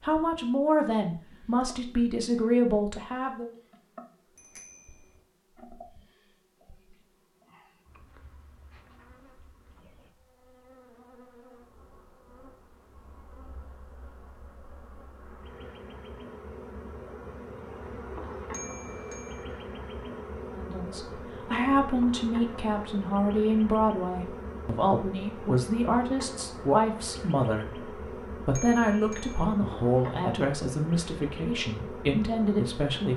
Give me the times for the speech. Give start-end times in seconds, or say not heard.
0.0-3.5, 20.6-27.8, 28.4-33.1.